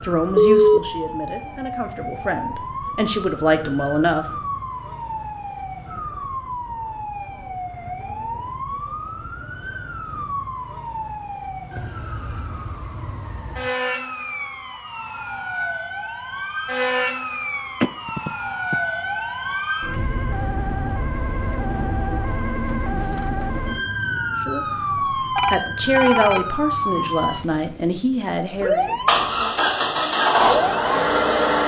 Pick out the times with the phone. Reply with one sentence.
The phone can be heard from 0.3 to 0.8 s, from 17.8 to 18.8 s and from 25.4 to 26.4 s.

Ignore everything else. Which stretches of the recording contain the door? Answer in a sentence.
You can't hear the door here.